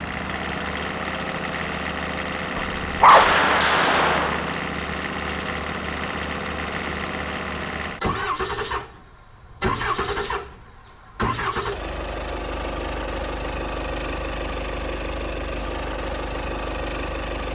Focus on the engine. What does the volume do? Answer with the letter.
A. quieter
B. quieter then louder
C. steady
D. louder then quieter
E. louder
C.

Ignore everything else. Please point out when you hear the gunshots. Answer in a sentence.
The gunshots can be heard from 3.0 to 4.6 s.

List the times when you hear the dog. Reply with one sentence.
The dog can be heard from 2.5 to 3.3 s.